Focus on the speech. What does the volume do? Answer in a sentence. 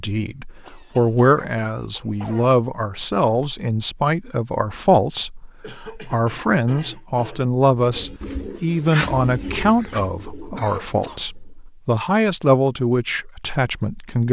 The loudness of the speech stays about the same.